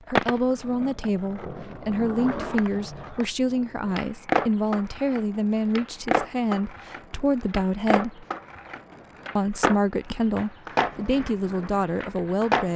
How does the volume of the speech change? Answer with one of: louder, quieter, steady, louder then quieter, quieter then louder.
steady.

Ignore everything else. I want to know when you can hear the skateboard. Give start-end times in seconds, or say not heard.
0.1-12.7.